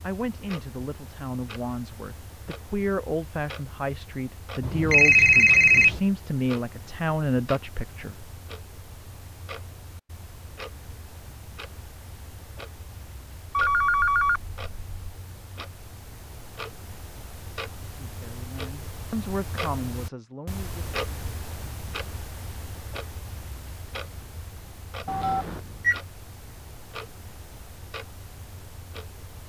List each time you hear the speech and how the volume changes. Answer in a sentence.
You can hear the speech from 0.0 to 8.2 s, getting louder; and briefly from 18.1 to 20.8 s.